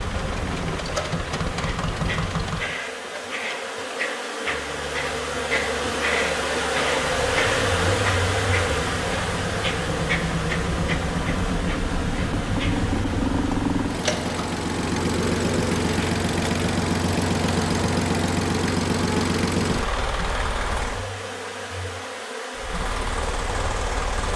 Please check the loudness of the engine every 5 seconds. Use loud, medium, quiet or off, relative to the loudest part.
medium, medium, loud, loud, medium.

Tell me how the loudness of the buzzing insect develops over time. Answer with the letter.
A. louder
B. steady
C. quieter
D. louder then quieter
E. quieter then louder
D.